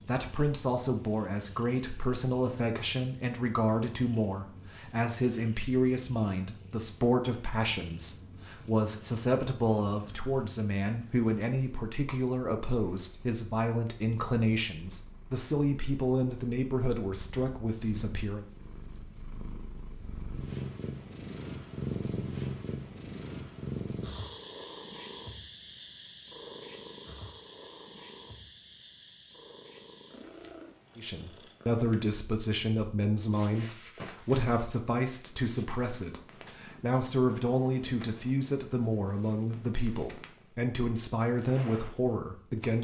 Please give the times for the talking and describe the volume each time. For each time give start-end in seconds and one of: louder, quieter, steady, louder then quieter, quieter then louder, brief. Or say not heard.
0.1-18.4 steady
30.9-42.7 steady.